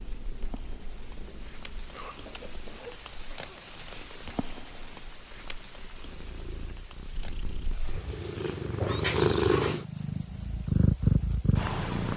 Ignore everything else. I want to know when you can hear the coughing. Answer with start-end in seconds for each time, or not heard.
1.9-3.7.